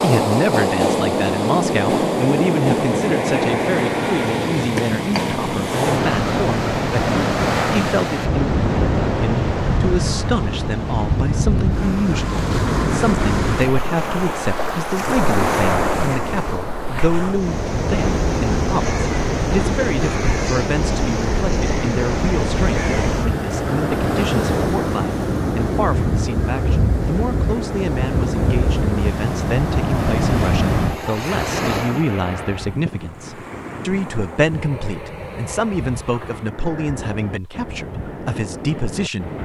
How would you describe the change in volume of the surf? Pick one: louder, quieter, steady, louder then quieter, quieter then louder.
quieter.